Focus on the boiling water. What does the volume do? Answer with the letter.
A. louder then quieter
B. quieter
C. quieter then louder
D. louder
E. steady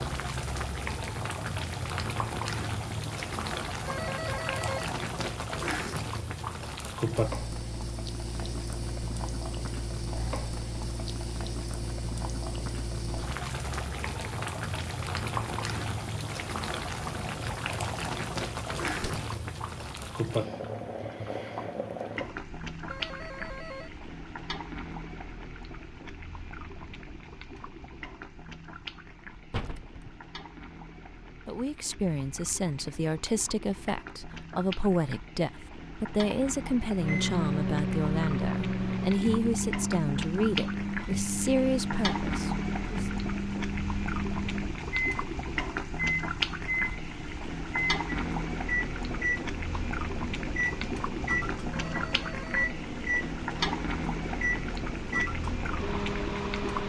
C.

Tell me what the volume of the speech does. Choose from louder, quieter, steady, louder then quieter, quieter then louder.
steady.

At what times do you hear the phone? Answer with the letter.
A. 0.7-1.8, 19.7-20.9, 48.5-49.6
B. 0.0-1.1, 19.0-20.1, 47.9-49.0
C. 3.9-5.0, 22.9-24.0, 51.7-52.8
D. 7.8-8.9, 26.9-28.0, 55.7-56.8
C.